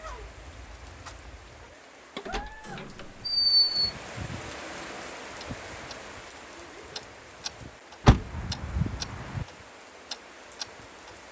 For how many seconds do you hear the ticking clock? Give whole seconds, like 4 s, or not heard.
11 s.